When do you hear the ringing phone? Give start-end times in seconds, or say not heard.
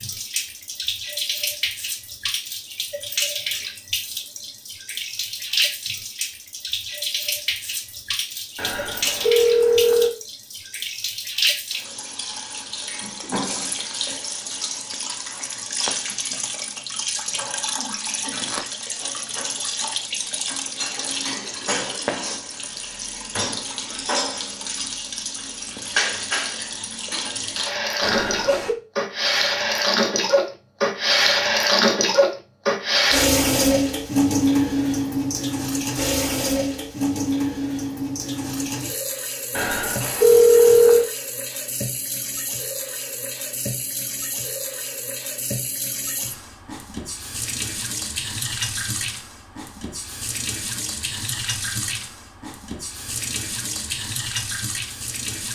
8.6-10.1, 28.0-28.8, 39.5-41.0.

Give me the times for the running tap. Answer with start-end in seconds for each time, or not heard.
0.0-55.5.